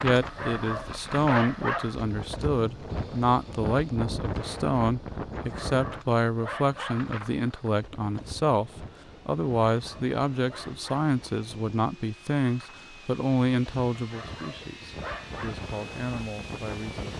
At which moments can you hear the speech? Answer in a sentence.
The speech can be heard from 0.0 to 17.1 s.